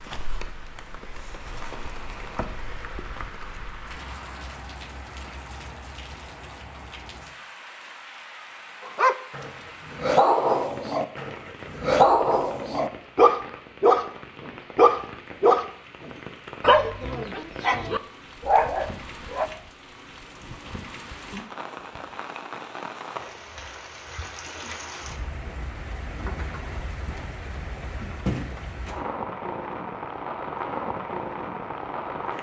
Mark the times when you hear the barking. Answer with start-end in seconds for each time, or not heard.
8.8-19.5.